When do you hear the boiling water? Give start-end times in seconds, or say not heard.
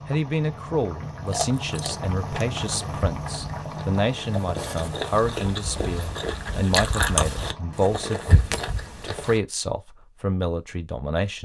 0.0-8.0.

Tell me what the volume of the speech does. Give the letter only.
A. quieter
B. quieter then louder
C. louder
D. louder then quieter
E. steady
E.